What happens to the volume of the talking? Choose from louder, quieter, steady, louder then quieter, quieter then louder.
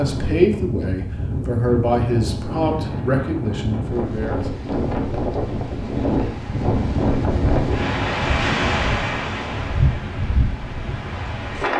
quieter.